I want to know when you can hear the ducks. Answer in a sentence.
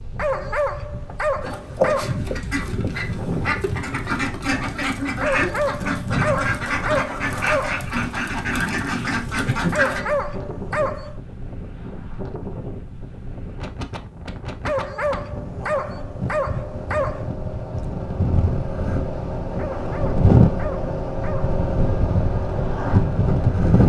The ducks can be heard from 1.4 to 10.1 s.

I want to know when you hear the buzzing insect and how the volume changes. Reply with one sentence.
The buzzing insect can't be heard in this clip.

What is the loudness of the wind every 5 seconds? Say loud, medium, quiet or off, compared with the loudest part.
quiet, quiet, quiet, medium, loud.